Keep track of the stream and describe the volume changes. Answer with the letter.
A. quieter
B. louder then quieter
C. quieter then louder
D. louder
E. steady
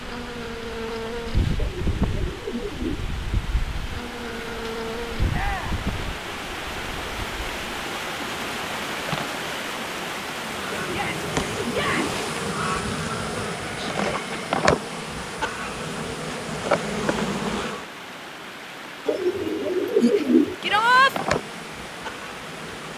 B.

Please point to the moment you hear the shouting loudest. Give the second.
21 s.